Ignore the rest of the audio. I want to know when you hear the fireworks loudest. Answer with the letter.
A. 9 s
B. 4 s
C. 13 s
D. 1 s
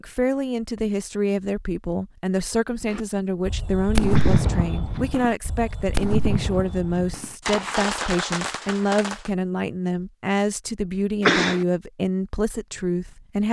B.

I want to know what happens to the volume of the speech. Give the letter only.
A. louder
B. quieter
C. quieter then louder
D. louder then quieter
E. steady
E.